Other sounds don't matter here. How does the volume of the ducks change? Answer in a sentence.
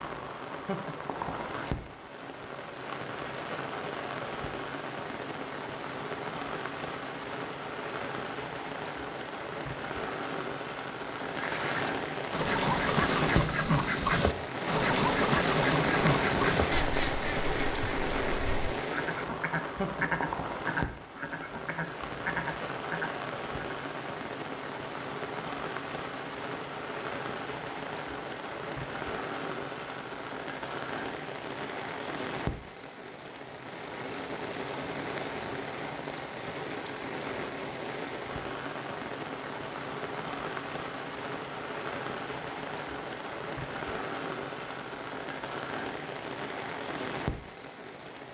The volume of the ducks goes down.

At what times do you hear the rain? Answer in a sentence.
The rain can be heard from 0.0 to 48.2 s.